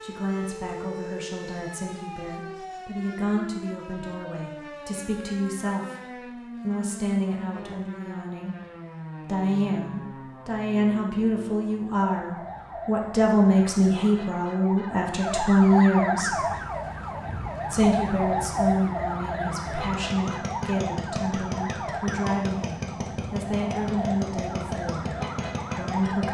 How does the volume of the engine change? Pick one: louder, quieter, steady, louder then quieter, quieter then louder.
louder.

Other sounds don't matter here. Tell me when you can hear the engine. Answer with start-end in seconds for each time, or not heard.
16.1-26.2.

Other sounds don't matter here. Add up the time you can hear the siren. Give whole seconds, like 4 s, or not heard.
26 s.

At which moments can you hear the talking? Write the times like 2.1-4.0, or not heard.
0.0-8.6, 9.2-16.4, 17.7-25.1, 25.8-26.2.